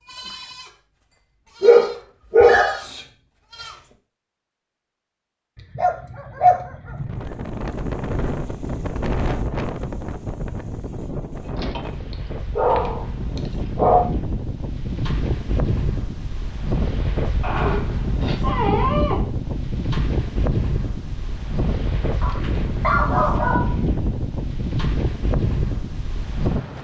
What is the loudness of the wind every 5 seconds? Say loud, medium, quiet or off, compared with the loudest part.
off, loud, medium, loud, loud, loud.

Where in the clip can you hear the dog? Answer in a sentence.
The dog can be heard from 1.6 to 2.8 s, from 5.5 to 7.2 s, from 11.6 to 14.1 s, from 17.4 to 19.2 s and from 22.2 to 23.8 s.